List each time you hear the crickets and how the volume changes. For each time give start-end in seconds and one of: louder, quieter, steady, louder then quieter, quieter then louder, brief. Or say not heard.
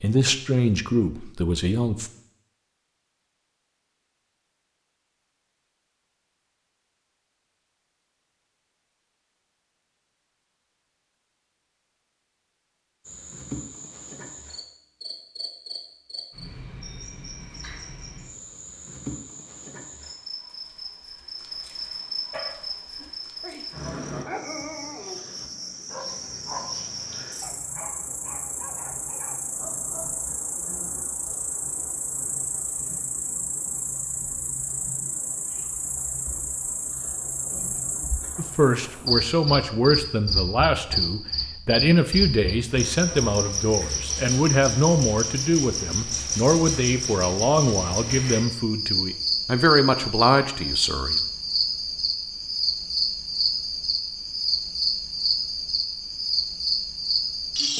13.1-57.7 louder.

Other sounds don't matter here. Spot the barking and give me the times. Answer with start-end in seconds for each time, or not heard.
22.3-30.3.